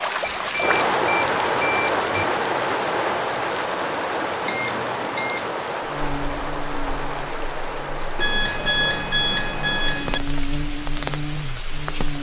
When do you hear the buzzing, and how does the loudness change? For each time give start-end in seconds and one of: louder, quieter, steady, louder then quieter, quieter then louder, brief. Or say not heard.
5.8-12.1 quieter then louder.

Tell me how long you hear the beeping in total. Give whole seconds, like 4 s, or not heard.
5 s.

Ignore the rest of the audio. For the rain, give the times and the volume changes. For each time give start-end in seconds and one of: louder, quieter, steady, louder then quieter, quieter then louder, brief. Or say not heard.
0.0-12.1 quieter.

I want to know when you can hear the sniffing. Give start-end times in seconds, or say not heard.
not heard.